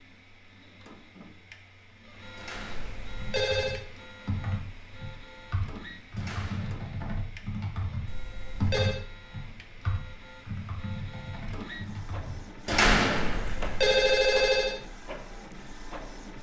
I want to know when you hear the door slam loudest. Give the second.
13 s.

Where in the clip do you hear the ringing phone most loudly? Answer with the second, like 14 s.
14 s.